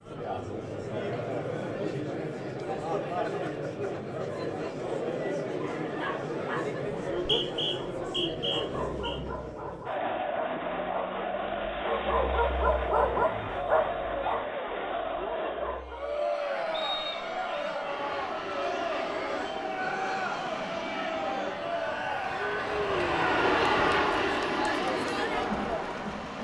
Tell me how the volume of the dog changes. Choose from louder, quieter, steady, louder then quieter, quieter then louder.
louder then quieter.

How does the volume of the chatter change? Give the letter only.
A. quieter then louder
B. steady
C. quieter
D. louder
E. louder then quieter
B.